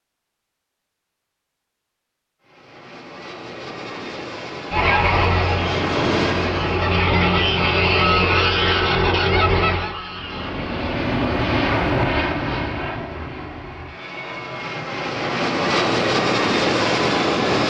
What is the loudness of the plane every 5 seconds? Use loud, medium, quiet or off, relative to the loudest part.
quiet, medium, medium, loud.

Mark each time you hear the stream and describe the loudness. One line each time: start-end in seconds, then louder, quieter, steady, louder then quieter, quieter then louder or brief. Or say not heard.
not heard.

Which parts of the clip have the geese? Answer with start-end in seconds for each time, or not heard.
4.7-11.1.